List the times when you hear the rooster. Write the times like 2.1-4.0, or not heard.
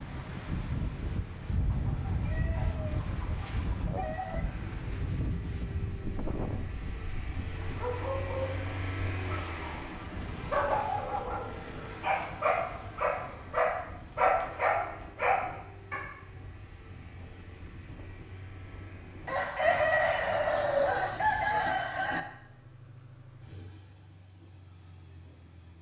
1.6-4.5, 19.2-22.2.